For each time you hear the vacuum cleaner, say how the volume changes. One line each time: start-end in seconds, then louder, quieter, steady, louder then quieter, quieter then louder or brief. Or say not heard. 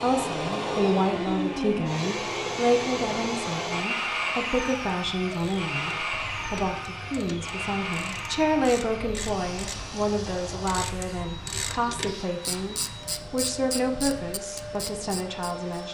0.0-15.8 quieter.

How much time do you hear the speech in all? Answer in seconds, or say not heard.
16 s.